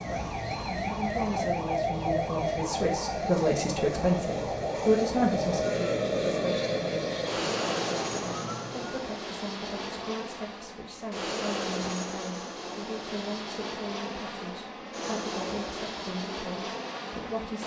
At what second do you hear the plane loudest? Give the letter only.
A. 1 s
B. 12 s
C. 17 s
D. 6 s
D.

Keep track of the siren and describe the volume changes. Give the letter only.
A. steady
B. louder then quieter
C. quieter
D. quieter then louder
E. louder
C.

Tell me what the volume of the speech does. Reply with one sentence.
The volume of the speech goes up, then down.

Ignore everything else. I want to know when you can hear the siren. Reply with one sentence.
The siren can be heard from 0.0 to 9.1 s.